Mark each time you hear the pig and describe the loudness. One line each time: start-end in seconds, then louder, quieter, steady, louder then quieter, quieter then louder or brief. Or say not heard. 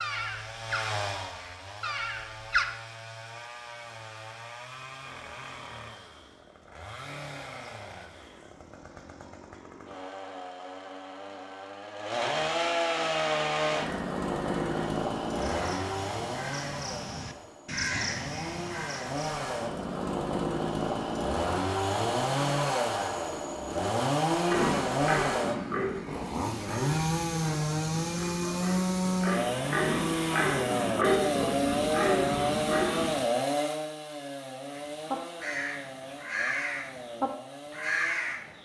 24.5-33.1 quieter then louder.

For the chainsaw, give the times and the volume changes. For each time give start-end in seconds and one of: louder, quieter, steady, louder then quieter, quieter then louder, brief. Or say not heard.
0.0-38.5 louder.